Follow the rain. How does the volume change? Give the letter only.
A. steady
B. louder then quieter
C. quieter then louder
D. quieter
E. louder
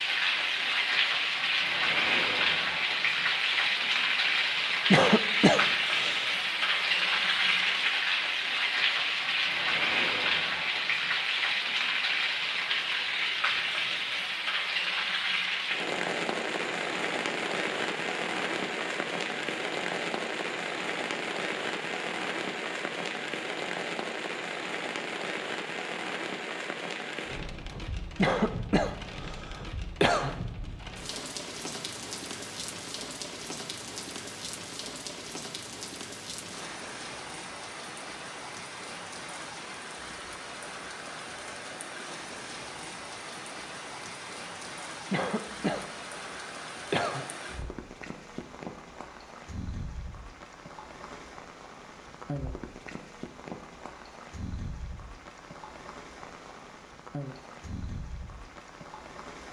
D.